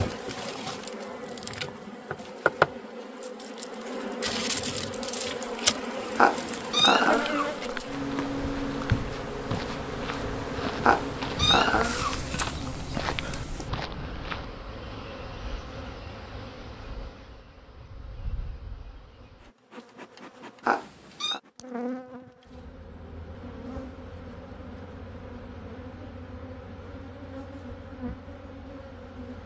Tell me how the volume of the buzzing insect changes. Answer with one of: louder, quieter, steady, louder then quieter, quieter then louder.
quieter.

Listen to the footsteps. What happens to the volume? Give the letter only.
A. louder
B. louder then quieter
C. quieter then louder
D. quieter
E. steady
A.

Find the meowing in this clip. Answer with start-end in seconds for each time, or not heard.
6.2-7.5, 10.8-12.2, 20.6-21.4.